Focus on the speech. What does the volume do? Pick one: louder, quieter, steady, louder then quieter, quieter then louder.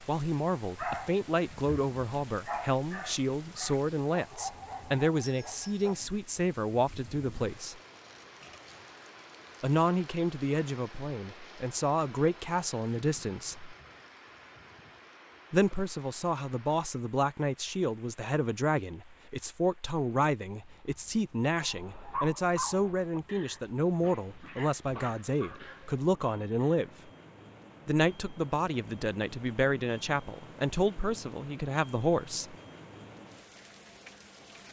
steady.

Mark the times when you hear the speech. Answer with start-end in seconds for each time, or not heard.
0.1-7.8, 9.6-13.8, 15.5-26.9, 27.9-32.5.